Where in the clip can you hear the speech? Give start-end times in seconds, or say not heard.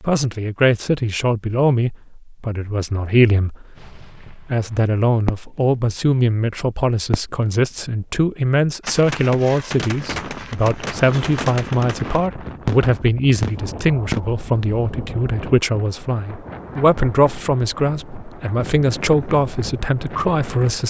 0.0-20.8.